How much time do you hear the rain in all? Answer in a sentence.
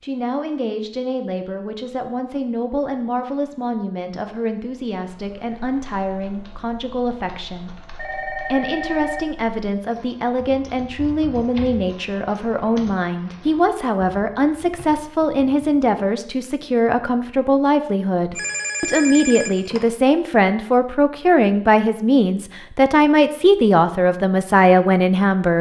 You can't hear the rain here.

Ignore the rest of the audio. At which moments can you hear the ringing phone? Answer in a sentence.
The ringing phone can be heard from 8.0 to 9.2 s and from 18.3 to 19.8 s.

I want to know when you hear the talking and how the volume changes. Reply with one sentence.
You can hear the talking from 0.0 to 25.5 s, getting louder.